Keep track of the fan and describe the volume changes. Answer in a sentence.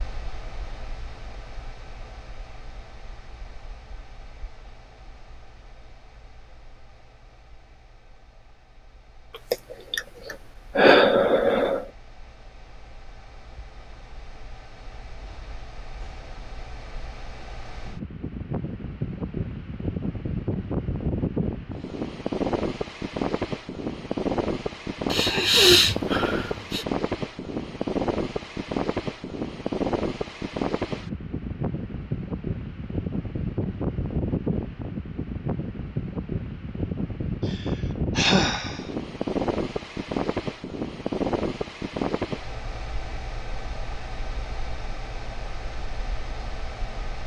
The volume of the fan goes up.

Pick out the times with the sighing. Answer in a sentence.
The sighing can be heard from 9.5 to 11.8 s, from 25.1 to 26.9 s and from 37.5 to 38.9 s.